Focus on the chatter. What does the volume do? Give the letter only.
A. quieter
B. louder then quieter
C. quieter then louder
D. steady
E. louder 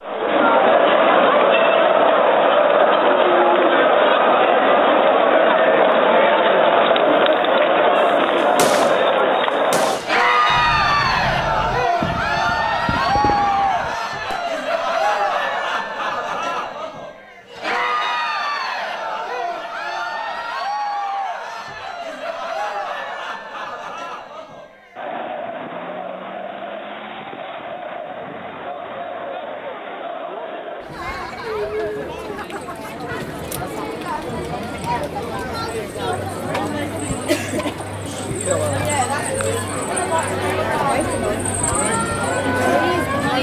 C.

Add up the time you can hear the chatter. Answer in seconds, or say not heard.
43 s.